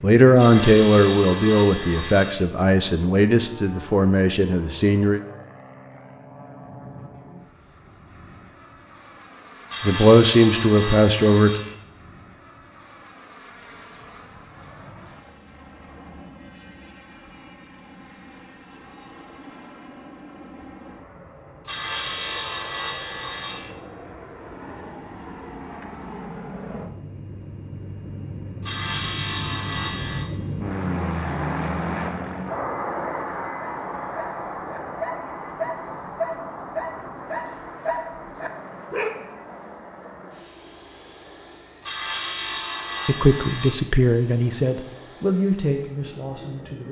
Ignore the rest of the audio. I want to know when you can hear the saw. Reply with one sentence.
You can hear the saw from 0.3 to 2.5 s, from 9.7 to 11.8 s, from 21.6 to 23.8 s, from 28.6 to 30.3 s and from 41.9 to 43.9 s.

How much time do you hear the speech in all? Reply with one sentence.
You can hear the speech for 11 seconds altogether.